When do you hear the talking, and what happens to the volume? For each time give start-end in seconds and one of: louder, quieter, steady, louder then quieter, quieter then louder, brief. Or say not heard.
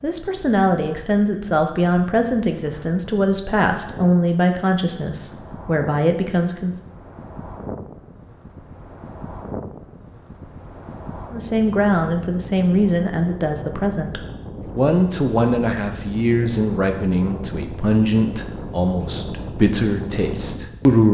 0.0-6.8 steady
11.3-21.0 steady.